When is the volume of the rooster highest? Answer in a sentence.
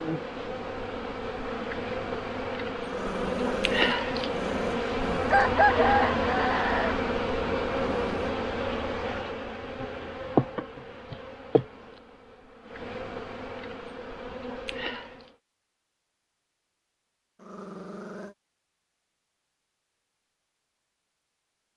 The volume of the rooster peaks at 6 seconds.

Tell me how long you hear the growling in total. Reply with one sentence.
The growling can be heard for 4 seconds in total.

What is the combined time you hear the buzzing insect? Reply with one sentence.
You can hear the buzzing insect for 15 seconds altogether.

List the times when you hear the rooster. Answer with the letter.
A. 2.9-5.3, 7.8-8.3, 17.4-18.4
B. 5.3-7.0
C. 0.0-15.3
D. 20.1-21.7
B.